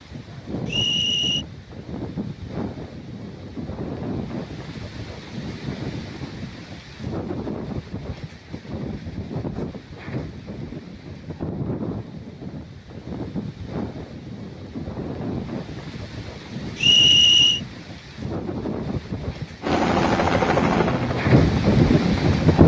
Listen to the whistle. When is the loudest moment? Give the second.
17 s.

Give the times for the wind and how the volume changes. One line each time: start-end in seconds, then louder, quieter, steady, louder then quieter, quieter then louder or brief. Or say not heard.
0.0-22.6 louder.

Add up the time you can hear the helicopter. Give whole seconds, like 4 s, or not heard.
3 s.